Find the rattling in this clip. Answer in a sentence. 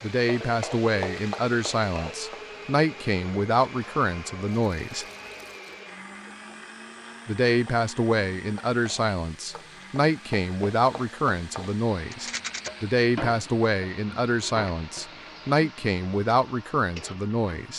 You can hear the rattling from 4.5 to 5.8 s and from 12.1 to 12.7 s.